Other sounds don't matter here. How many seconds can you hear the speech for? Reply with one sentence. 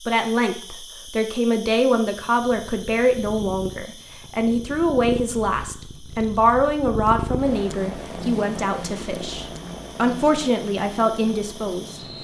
You can hear the speech for 12 seconds altogether.